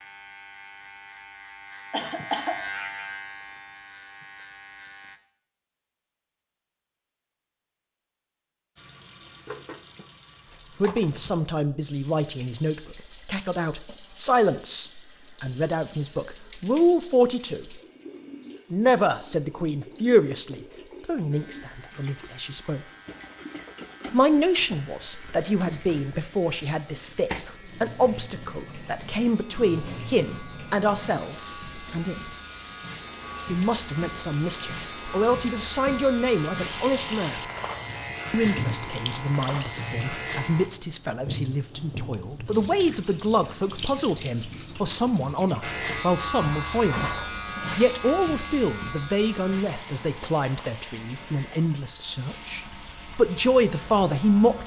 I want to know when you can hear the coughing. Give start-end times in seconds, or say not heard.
1.9-2.6.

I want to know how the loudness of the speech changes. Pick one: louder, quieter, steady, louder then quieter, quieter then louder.
steady.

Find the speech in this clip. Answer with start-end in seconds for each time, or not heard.
10.8-17.8, 18.7-22.8, 24.1-32.4, 33.5-37.5, 38.3-54.6.